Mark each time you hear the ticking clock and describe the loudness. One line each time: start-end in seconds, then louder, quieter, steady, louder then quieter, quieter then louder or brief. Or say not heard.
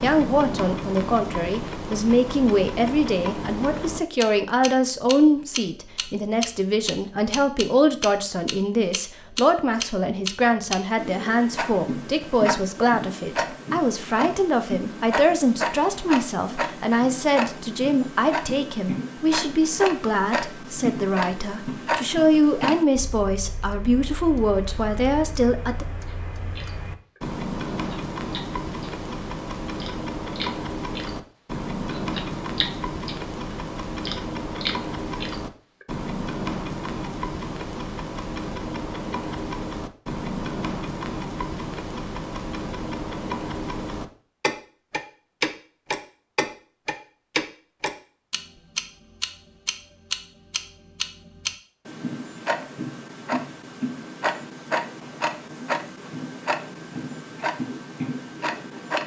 0.0-59.0 steady.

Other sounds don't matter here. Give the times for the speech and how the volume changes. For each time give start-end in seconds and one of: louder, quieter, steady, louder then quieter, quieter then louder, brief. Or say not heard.
0.0-25.9 steady.